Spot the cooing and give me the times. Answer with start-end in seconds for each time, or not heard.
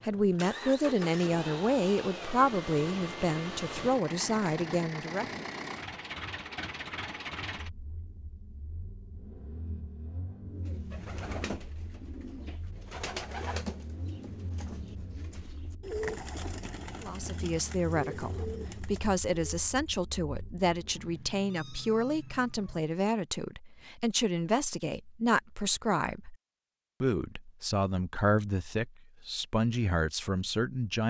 10.4-19.6.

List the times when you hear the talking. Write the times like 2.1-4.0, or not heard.
0.0-5.5, 17.0-26.4, 27.0-31.0.